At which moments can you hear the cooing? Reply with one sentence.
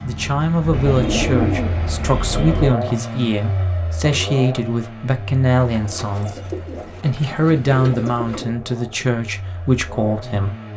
The cooing can be heard from 0.7 to 2.8 s and from 5.5 to 8.6 s.